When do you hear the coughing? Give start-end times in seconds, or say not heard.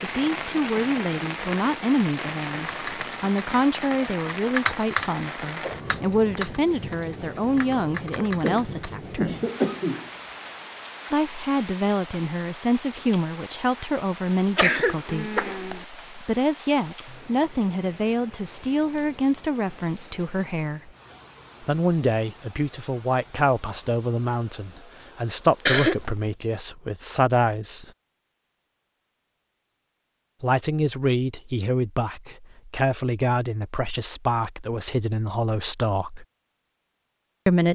8.2-10.1, 14.6-15.8, 25.6-26.4.